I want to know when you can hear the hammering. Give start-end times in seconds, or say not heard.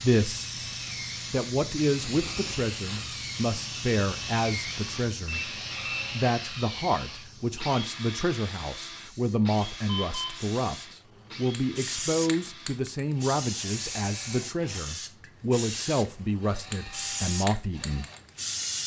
not heard.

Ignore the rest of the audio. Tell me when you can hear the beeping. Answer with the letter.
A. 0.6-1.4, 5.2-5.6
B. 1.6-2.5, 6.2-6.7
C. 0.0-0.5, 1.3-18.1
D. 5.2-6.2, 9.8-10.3
D.